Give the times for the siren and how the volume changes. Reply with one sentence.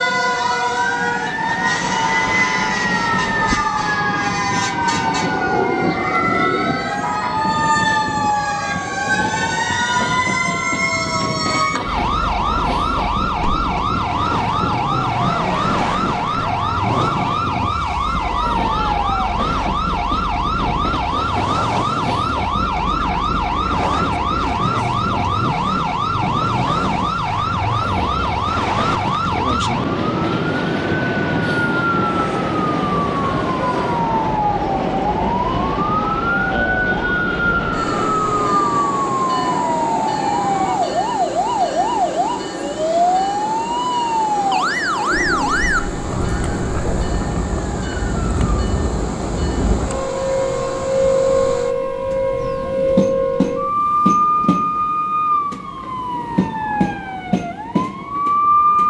The siren can be heard from 0.0 to 58.8 s, at a steady volume.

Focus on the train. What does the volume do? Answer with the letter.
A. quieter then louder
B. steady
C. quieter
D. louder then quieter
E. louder
B.